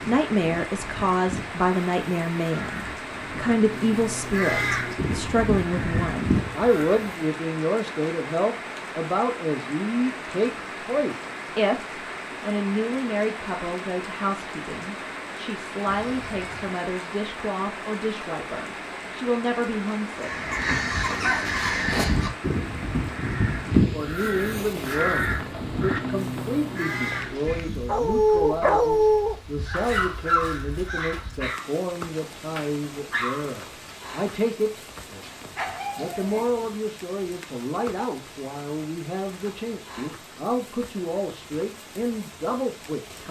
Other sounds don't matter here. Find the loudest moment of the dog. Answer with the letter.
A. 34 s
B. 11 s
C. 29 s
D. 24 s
C.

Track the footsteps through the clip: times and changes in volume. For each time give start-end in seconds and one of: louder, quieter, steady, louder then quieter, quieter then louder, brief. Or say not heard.
not heard.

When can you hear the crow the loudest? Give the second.
24 s.